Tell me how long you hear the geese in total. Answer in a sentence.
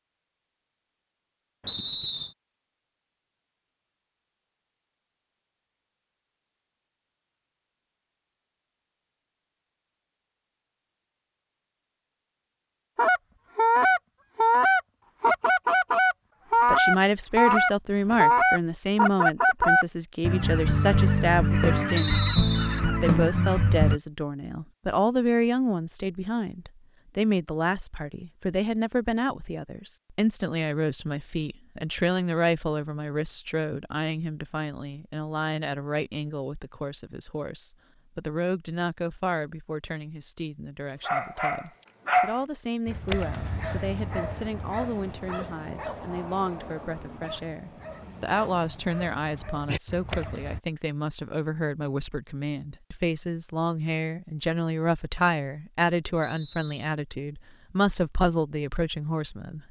You can hear the geese for 11 seconds altogether.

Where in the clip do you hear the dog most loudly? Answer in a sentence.
The loudest moment of the dog is at 42 seconds.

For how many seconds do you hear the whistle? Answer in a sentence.
You can hear the whistle for 2 seconds altogether.